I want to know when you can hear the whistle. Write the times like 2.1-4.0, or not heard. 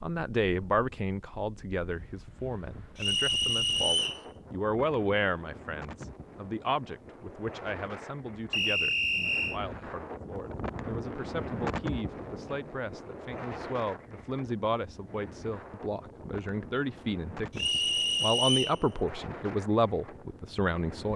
3.0-4.2, 8.5-9.6, 17.6-18.8.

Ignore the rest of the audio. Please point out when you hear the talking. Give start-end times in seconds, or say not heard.
0.0-21.1.